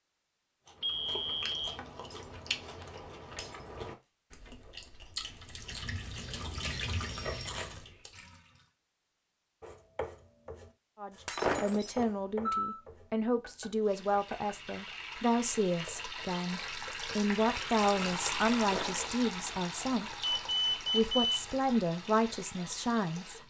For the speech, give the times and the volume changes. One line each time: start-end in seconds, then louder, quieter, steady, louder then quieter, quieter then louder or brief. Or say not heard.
10.9-23.4 steady.